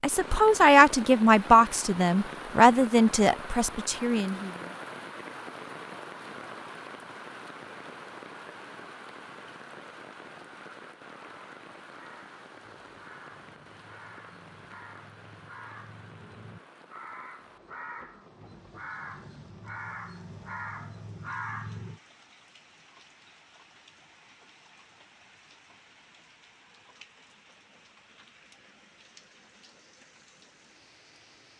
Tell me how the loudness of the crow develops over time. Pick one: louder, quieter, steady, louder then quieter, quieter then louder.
louder.